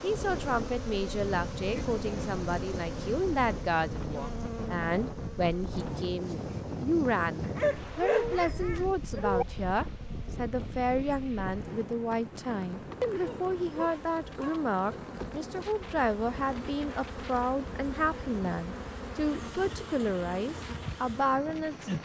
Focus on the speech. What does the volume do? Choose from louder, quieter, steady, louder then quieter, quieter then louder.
steady.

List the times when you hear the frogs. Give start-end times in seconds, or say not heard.
not heard.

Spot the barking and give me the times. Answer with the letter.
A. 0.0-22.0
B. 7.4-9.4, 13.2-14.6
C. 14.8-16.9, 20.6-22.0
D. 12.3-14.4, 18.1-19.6
B.